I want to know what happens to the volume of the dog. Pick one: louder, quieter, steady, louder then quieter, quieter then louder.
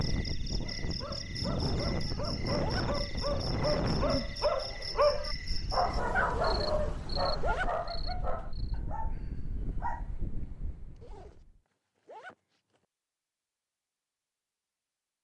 louder then quieter.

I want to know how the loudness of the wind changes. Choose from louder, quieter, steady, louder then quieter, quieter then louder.
quieter.